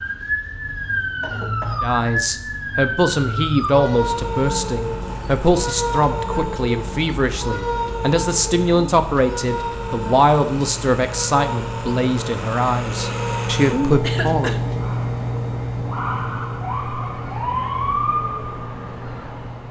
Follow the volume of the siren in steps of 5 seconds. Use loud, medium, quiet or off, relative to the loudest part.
loud, loud, medium, loud.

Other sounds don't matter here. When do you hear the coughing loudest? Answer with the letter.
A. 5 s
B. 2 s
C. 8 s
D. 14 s
D.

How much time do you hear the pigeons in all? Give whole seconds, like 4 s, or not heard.
not heard.